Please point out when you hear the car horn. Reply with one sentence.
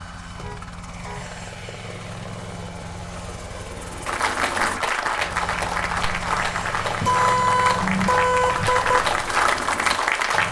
You can hear the car horn from 0.3 to 1.4 s and from 7.0 to 9.0 s.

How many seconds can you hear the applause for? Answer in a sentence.
You can hear the applause for 6 seconds altogether.